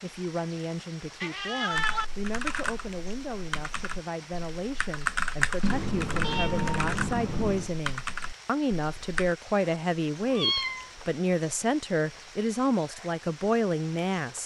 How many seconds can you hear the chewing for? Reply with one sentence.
The chewing can't be heard in this clip.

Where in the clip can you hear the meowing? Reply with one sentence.
The meowing can be heard from 1.2 to 2.0 s, from 5.6 to 7.7 s and from 10.3 to 10.9 s.